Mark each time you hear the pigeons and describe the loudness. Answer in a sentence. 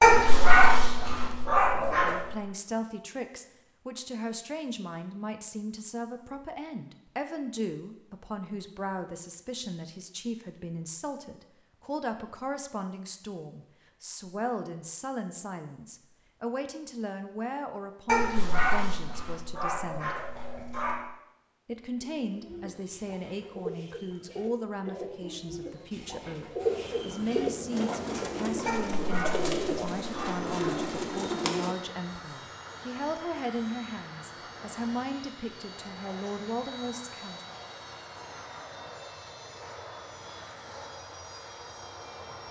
You can hear the pigeons from 22.0 to 31.8 s, getting louder.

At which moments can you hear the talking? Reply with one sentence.
You can hear the talking from 1.9 to 20.1 s and from 21.6 to 37.5 s.